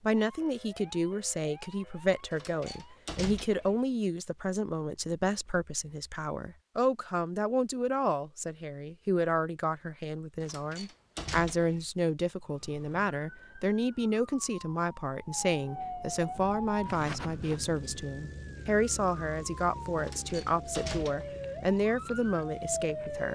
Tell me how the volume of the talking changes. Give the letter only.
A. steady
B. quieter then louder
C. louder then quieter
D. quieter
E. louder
A.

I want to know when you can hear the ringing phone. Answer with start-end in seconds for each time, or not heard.
not heard.